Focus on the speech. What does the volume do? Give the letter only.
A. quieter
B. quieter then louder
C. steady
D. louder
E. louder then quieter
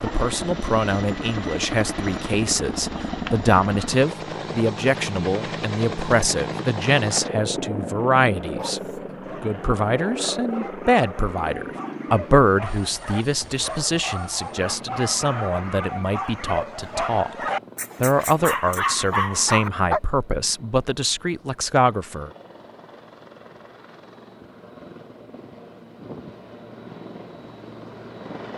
C.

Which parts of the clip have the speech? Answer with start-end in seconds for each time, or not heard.
0.0-8.8, 9.4-17.3, 18.0-22.3.